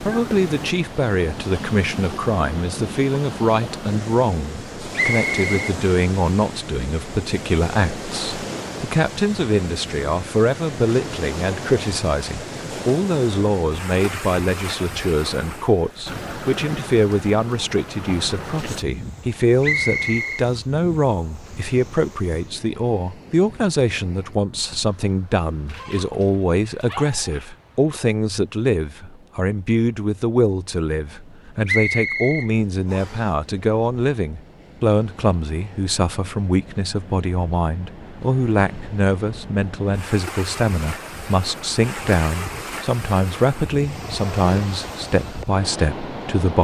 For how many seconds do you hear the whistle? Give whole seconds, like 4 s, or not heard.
3 s.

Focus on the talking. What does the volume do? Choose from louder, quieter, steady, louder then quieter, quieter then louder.
steady.